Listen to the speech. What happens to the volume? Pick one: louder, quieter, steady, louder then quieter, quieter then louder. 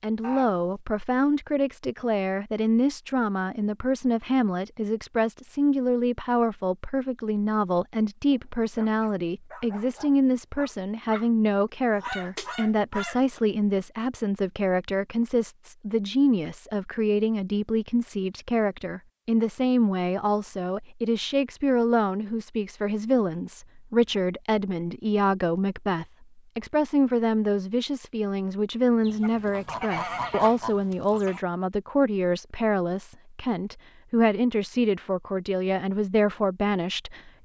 steady.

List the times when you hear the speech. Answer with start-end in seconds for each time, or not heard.
0.0-37.4.